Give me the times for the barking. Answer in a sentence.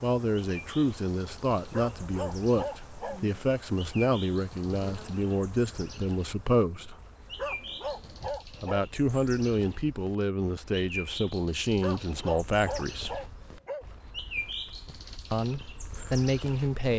The barking can be heard from 1.7 to 3.4 s, from 7.3 to 8.8 s and from 11.7 to 13.8 s.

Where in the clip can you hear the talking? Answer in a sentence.
The talking can be heard from 0.0 to 7.0 s, from 8.6 to 13.2 s and from 15.3 to 16.9 s.